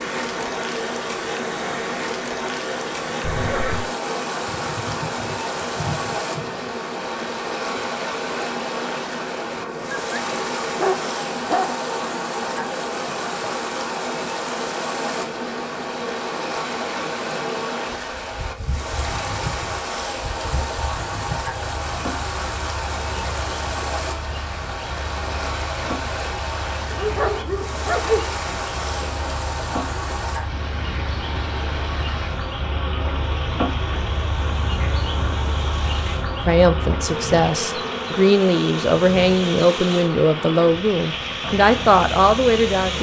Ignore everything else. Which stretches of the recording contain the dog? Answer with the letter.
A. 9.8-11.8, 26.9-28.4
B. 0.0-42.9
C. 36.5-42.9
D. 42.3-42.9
A.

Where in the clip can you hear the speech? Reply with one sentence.
You can hear the speech from 36.5 to 42.9 s.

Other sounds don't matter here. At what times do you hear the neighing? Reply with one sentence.
The neighing can be heard from 3.2 to 3.9 s.